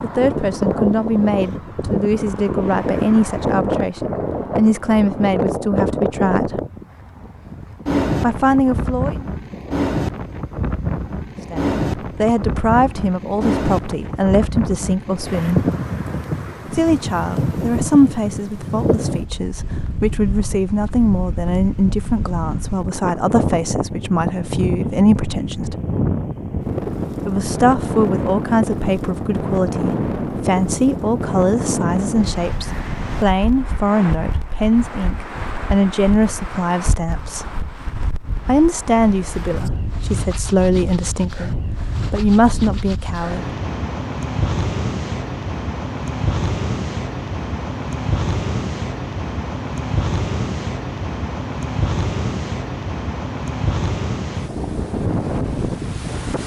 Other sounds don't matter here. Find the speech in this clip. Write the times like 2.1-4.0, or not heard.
0.0-6.6, 8.2-9.2, 11.5-15.6, 16.7-25.8, 27.2-37.5, 38.5-43.5.